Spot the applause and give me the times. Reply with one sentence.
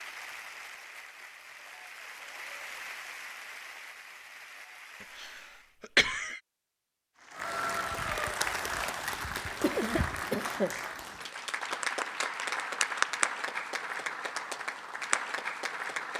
The applause can be heard from 0.0 to 5.8 s and from 7.2 to 16.1 s.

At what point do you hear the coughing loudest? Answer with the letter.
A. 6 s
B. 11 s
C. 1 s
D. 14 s
A.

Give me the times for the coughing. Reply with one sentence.
The coughing can be heard from 5.2 to 6.4 s and from 9.6 to 10.8 s.